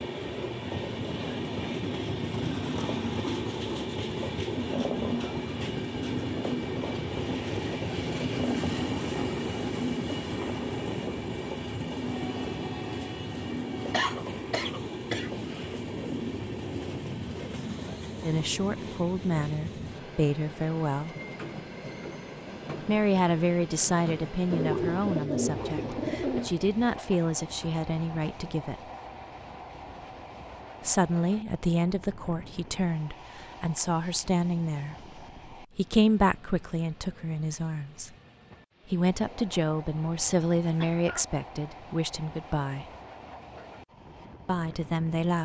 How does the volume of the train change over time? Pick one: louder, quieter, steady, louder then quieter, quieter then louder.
quieter.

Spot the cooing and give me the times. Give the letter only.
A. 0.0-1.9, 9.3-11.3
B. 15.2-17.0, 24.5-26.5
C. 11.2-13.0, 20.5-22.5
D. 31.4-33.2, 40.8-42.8
B.